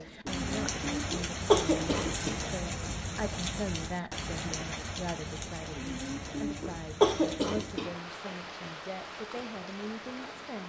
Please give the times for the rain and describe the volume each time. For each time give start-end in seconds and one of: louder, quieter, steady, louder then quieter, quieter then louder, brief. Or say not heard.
0.0-10.6 quieter.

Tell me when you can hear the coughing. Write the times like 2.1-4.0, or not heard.
0.2-2.4, 5.8-7.9.